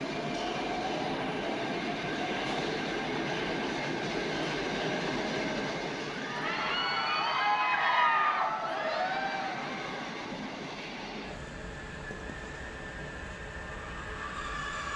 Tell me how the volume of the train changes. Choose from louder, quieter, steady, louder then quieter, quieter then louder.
quieter.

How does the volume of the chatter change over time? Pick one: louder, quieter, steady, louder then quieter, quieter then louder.
louder.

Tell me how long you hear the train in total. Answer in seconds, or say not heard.
15 s.